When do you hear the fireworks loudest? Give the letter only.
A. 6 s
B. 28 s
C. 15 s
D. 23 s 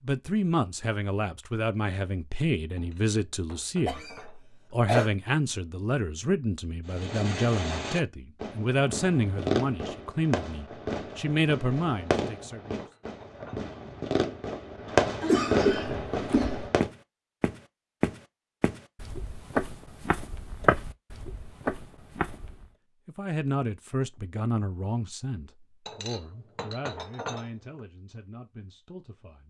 C.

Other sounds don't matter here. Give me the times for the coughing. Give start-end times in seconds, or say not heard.
3.9-5.1, 15.2-16.6.